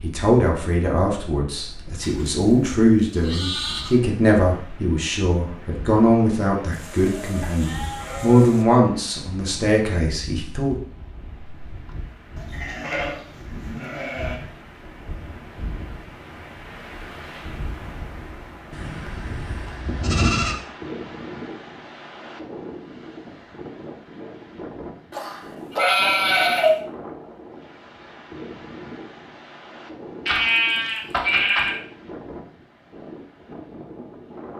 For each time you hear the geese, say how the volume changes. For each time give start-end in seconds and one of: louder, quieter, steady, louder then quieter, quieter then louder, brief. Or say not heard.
not heard.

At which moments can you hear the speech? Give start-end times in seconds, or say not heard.
0.0-10.8.